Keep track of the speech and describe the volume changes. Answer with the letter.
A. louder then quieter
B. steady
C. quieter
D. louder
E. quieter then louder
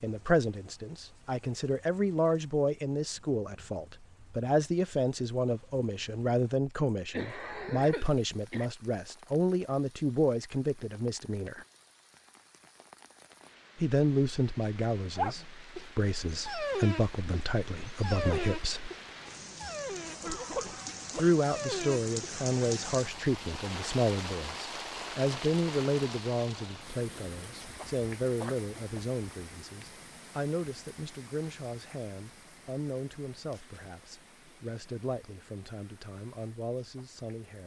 C.